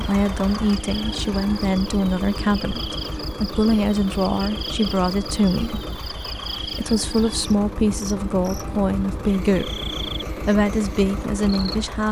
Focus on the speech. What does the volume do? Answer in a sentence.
The volume of the speech stays about the same.